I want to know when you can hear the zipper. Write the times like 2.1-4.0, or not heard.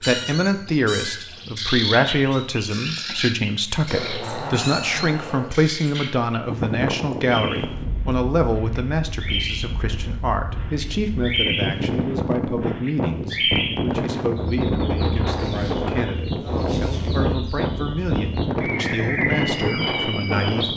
3.9-5.5, 15.3-17.3.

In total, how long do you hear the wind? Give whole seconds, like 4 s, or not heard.
14 s.